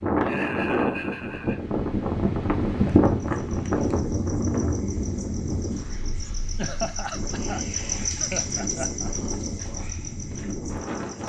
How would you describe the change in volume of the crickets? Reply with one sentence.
The volume of the crickets goes up, then down.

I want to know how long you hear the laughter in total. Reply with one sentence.
You can hear the laughter for 4 seconds altogether.